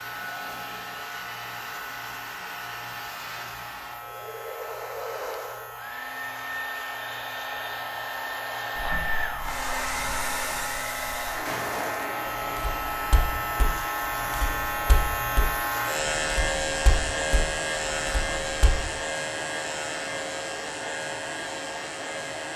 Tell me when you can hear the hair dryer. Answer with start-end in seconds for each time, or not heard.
0.0-22.5.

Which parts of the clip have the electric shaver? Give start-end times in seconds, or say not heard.
0.0-22.5.